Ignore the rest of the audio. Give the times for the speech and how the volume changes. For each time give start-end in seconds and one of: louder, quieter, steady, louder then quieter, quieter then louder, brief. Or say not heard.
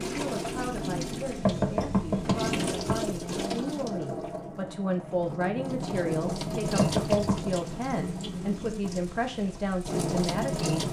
0.0-10.8 louder.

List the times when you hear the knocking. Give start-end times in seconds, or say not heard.
1.4-3.0, 6.8-7.5.